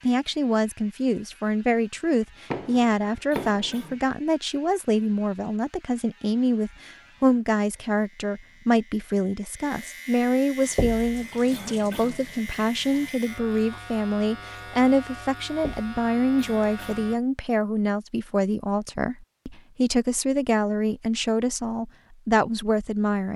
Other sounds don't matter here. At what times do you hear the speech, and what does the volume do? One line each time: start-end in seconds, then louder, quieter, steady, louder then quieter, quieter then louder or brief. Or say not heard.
0.0-23.3 steady.